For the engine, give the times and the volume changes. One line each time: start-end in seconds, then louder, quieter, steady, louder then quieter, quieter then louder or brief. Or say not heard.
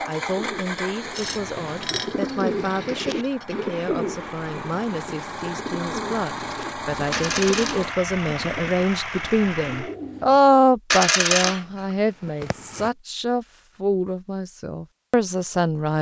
0.0-9.9 quieter then louder.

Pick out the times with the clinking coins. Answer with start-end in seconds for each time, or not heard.
1.1-3.5, 7.1-7.8, 10.9-12.9.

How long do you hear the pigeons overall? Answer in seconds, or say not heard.
10 s.